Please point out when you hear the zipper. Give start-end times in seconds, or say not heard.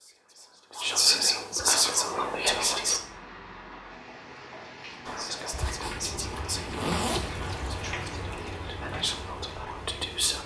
5.5-7.3.